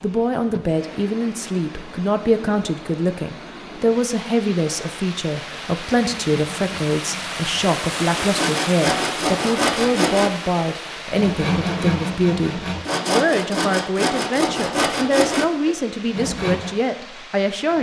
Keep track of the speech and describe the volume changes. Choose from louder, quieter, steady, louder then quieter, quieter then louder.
steady.